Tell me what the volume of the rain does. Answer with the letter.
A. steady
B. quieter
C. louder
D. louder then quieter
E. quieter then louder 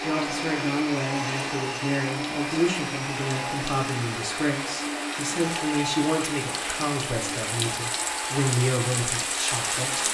C.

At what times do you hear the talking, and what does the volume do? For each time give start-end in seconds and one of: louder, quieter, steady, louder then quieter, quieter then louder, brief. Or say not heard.
0.0-10.1 steady.